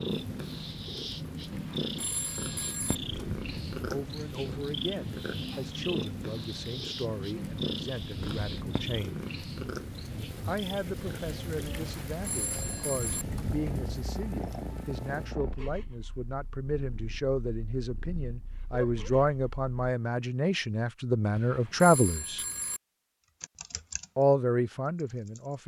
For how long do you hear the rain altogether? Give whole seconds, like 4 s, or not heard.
15 s.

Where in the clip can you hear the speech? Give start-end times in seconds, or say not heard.
3.9-9.2, 10.4-22.4, 24.1-25.6.